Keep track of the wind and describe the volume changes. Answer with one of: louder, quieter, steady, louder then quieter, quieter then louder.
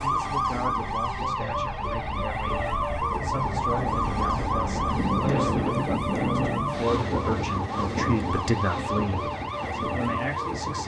louder then quieter.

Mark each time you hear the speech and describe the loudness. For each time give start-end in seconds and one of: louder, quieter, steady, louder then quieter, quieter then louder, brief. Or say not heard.
0.0-10.8 louder.